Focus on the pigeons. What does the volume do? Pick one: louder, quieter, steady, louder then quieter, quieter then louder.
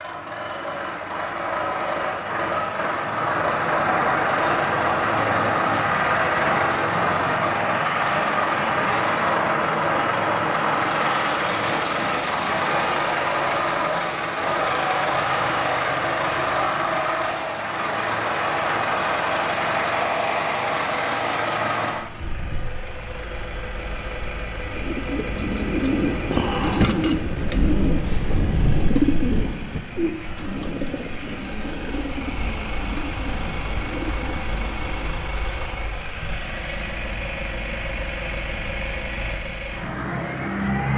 quieter.